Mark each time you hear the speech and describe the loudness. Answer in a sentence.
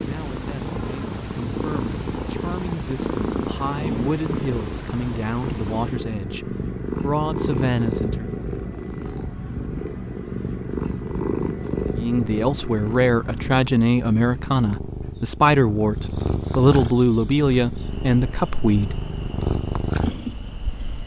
The speech can be heard from 0.0 to 8.3 s, getting louder; and from 11.9 to 18.9 s, at a steady volume.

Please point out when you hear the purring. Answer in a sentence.
You can hear the purring from 0.0 to 21.0 s.